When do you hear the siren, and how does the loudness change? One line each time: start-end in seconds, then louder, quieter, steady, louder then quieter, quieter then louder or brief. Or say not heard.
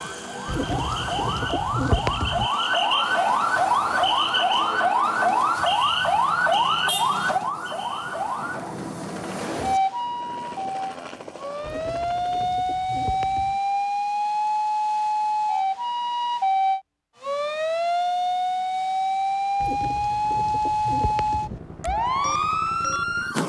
0.0-23.4 steady.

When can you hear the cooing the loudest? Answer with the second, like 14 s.
2 s.